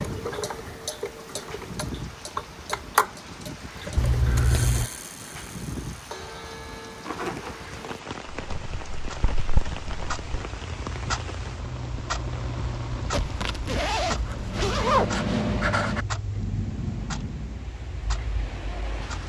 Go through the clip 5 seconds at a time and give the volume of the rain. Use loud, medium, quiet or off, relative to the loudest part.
loud, loud, loud, medium.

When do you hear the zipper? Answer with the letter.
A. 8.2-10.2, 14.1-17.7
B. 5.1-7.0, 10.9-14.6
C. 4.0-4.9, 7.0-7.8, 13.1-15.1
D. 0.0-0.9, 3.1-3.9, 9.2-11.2
C.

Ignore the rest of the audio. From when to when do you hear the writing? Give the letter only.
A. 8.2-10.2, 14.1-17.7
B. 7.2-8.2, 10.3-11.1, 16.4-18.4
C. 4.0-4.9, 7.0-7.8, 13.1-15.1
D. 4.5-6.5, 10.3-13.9
A.